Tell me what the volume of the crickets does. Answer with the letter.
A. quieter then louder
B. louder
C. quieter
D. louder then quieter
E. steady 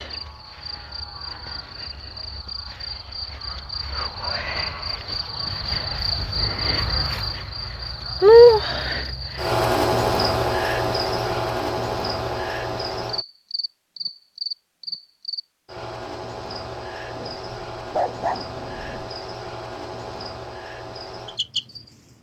D.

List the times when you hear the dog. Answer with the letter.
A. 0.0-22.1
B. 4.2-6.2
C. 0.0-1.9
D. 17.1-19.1
D.